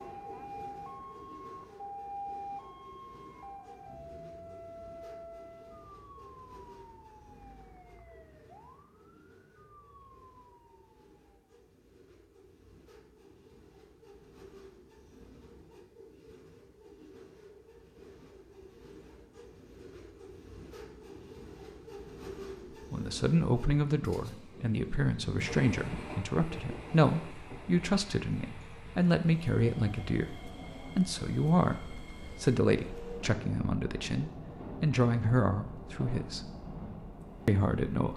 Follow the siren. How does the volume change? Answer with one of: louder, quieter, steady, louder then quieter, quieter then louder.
quieter.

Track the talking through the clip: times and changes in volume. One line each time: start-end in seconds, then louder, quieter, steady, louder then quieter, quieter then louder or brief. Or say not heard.
22.9-36.5 steady
37.5-38.1 brief.